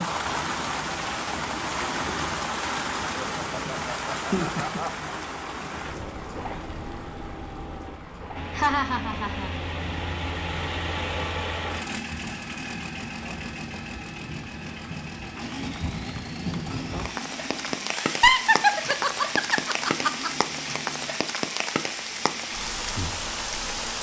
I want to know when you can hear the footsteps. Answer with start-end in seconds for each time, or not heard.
not heard.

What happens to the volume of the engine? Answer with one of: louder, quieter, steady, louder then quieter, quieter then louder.
louder then quieter.